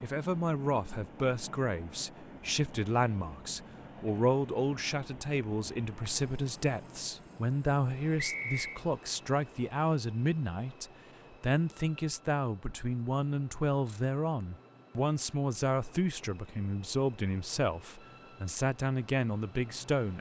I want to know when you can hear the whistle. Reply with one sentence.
You can hear the whistle from 8.2 to 8.8 s.